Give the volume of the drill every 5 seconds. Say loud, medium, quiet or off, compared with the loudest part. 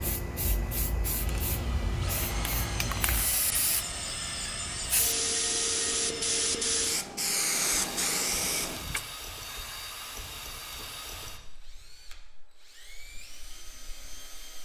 loud, loud, medium.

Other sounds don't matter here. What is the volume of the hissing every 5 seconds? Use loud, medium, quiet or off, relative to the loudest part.
medium, loud, off.